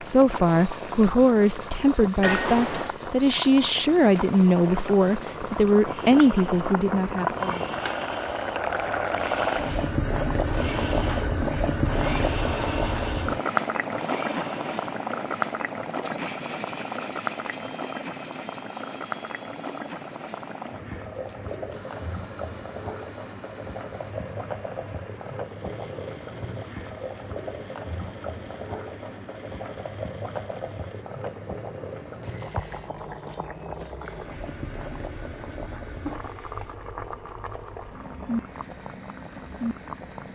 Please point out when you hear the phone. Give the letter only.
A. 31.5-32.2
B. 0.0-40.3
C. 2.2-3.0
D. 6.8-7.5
C.